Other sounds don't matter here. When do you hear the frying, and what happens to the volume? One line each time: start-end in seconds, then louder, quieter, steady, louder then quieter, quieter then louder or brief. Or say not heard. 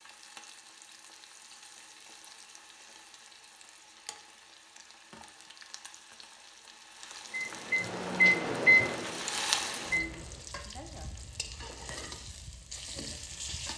0.0-13.7 louder then quieter.